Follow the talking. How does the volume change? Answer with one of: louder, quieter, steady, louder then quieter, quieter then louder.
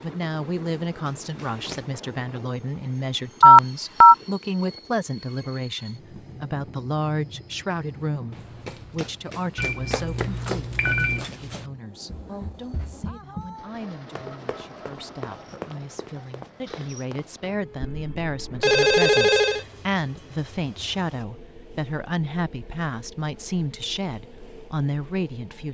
quieter then louder.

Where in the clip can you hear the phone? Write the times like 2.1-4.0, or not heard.
3.4-4.2, 9.6-11.2, 17.8-19.6.